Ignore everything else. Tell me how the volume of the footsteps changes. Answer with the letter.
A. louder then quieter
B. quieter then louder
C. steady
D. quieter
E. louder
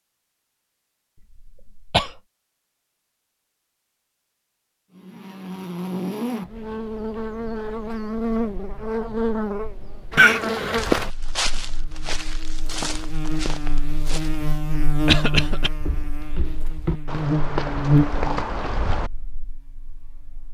B.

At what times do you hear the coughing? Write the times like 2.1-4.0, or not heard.
1.4-2.1, 10.2-10.8, 15.1-15.7.